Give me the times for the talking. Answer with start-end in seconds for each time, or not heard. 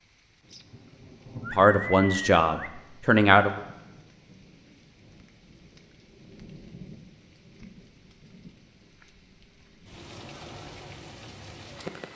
1.5-3.6.